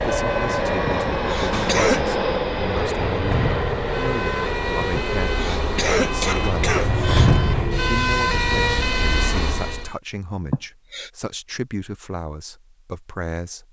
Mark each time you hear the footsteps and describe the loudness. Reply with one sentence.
You can't hear the footsteps here.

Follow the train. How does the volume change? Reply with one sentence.
The volume of the train goes down.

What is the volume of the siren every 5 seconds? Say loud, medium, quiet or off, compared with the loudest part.
medium, loud, off.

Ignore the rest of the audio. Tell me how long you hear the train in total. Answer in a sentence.
You can hear the train for 8 seconds altogether.